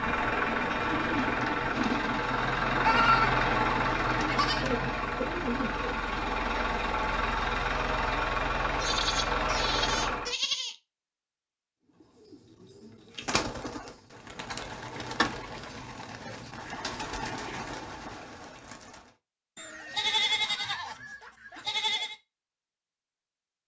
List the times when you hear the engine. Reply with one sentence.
The engine can be heard from 0.0 to 10.3 s.